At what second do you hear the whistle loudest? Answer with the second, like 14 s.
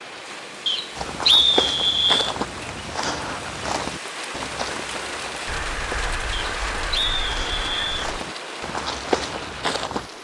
1 s.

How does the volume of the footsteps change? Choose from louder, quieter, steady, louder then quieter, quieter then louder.
quieter then louder.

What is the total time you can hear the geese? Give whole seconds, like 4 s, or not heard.
3 s.